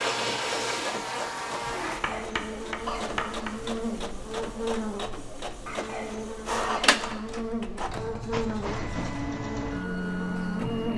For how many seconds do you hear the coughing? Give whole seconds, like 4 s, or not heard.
3 s.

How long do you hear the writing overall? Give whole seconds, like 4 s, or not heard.
3 s.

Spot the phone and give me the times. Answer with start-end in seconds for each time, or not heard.
not heard.